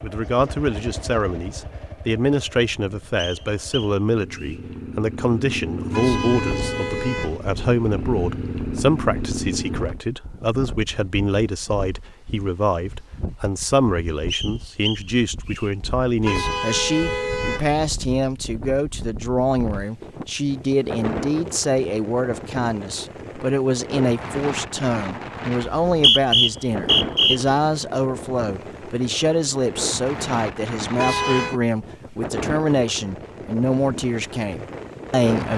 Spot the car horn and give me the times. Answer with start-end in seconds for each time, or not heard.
5.9-7.4, 16.2-17.7, 30.9-31.6.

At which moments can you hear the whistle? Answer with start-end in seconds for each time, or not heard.
3.1-4.6, 14.3-15.7, 25.6-27.6.